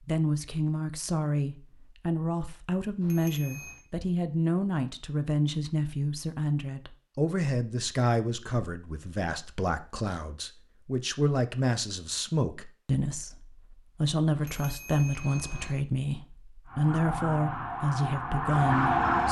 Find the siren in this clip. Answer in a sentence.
The siren can be heard from 16.6 to 19.2 s.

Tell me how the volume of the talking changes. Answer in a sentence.
The loudness of the talking stays about the same.